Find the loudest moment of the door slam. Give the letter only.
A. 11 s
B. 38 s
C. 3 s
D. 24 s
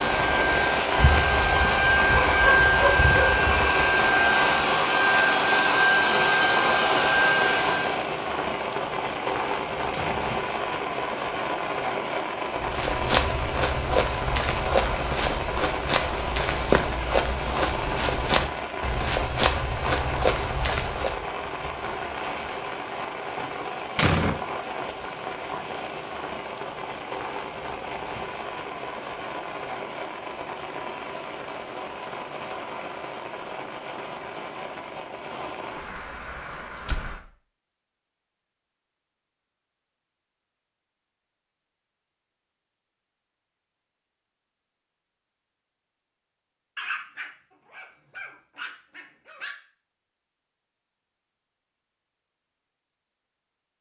D.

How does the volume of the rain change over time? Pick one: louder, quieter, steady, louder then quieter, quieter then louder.
quieter.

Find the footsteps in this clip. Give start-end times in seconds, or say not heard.
12.6-21.2.